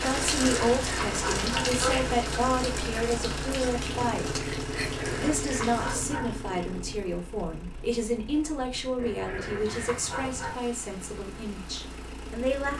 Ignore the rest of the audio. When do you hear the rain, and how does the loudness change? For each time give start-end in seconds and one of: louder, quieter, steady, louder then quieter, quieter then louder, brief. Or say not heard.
0.0-12.6 quieter.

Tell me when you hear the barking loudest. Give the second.
2 s.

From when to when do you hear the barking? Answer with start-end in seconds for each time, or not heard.
0.2-2.1, 4.8-6.3, 8.9-10.6.